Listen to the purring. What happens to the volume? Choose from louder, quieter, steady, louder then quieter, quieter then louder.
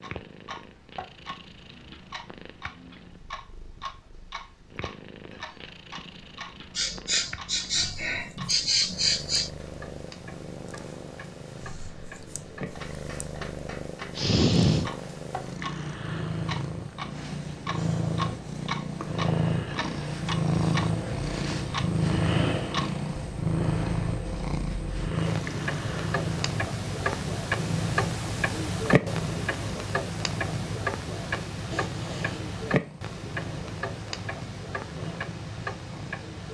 louder then quieter.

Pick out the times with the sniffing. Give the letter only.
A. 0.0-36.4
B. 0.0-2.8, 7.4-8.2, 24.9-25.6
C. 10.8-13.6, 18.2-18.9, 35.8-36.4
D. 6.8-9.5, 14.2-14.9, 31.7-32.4
D.